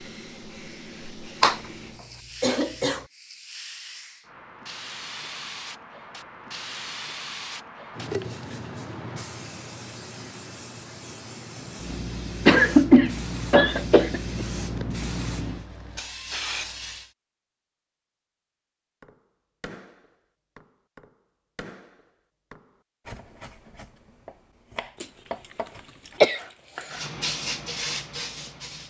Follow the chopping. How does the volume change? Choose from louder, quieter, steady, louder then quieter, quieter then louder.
louder.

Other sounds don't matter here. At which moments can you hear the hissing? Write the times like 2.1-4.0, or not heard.
0.0-17.1, 26.9-28.8.